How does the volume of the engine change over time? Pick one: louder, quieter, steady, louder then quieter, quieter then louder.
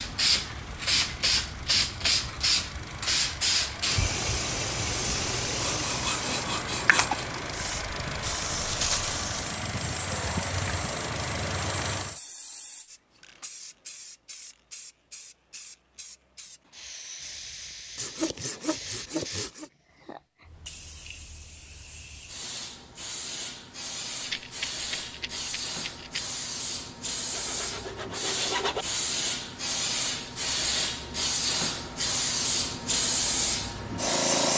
louder.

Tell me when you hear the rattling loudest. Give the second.
9 s.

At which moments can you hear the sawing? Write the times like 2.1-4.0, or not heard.
5.6-7.3, 17.9-19.7, 27.3-28.9.